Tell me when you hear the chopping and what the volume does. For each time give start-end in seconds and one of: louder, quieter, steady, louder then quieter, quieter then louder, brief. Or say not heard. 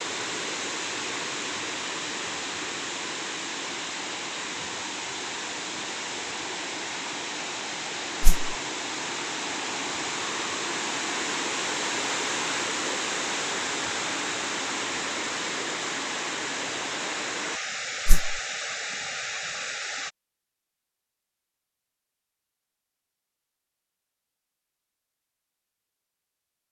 not heard.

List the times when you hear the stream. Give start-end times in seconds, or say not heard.
0.0-20.1.